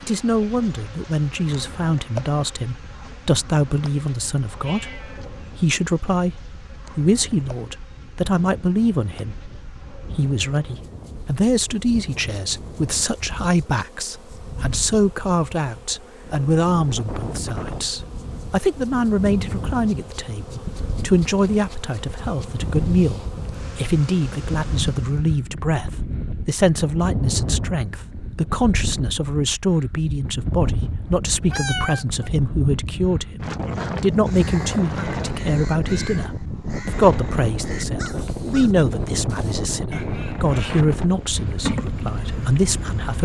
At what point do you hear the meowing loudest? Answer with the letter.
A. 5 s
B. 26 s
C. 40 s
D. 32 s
D.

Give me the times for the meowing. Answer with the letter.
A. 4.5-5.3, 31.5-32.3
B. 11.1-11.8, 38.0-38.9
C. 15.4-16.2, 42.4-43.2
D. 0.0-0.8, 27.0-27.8
A.